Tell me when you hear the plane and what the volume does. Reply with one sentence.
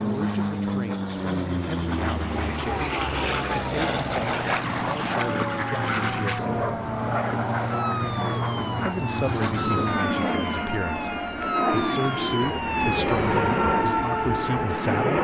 The plane can be heard from 0.0 to 15.2 s, at a steady volume.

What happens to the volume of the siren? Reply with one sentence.
The volume of the siren goes up.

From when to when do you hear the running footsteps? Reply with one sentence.
The running footsteps can't be heard in this clip.